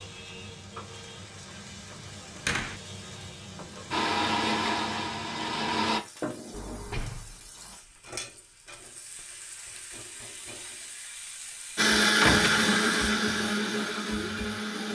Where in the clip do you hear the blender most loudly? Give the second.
12 s.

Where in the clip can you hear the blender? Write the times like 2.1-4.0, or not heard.
3.9-6.0, 11.8-14.9.